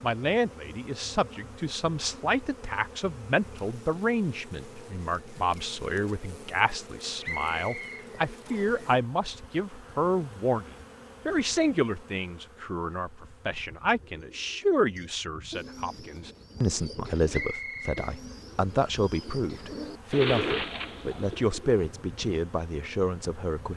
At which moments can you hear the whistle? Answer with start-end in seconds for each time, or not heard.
7.2-8.8, 17.3-18.1.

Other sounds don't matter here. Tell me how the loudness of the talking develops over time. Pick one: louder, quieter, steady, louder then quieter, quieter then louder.
steady.